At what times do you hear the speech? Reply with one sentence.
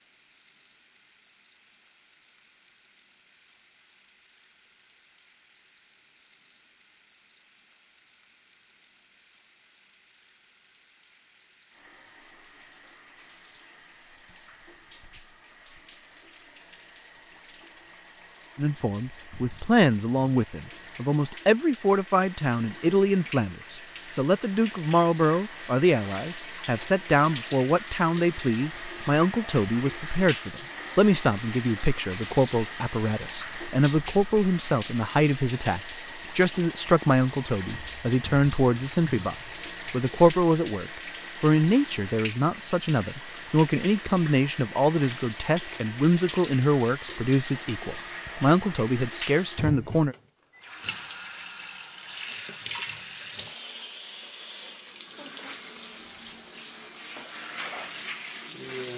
The speech can be heard from 18.6 to 50.1 s.